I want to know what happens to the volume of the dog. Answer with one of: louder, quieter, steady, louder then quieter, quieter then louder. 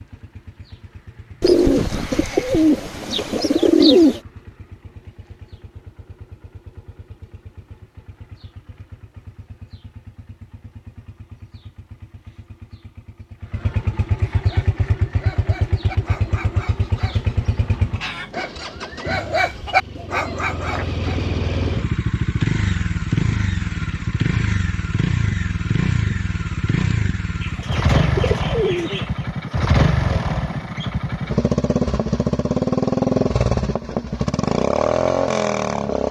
louder.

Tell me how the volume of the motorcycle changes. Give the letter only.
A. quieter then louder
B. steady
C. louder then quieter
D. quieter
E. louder
E.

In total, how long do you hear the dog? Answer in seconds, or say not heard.
7 s.